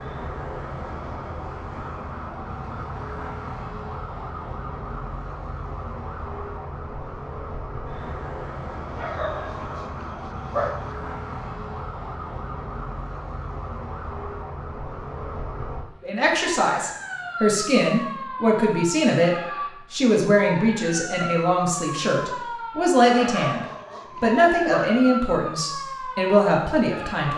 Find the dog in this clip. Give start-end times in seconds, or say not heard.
8.9-10.8, 23.1-25.1.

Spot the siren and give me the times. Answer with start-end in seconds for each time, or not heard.
0.0-27.3.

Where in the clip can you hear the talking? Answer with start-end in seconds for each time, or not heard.
16.0-27.3.